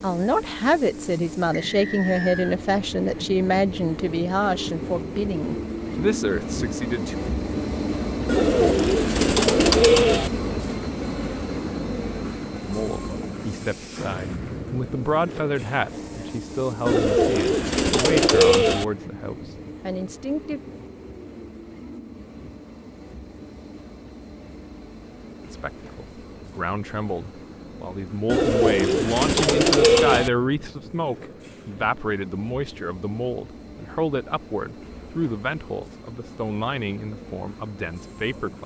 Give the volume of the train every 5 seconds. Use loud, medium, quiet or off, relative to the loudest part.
medium, loud, loud, medium, quiet, quiet, quiet, quiet.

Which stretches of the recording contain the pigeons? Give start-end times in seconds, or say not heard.
8.2-10.3, 16.9-18.9, 28.2-30.3.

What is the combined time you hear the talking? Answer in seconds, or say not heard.
28 s.